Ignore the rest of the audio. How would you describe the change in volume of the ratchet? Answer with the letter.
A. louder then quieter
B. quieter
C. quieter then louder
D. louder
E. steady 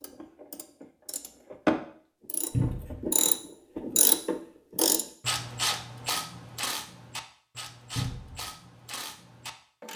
B.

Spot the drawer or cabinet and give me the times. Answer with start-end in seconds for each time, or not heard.
2.5-3.0, 8.0-8.4.